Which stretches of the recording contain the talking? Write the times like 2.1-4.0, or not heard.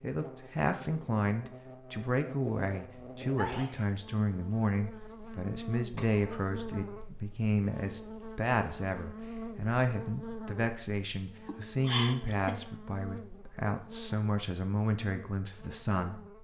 0.0-16.2.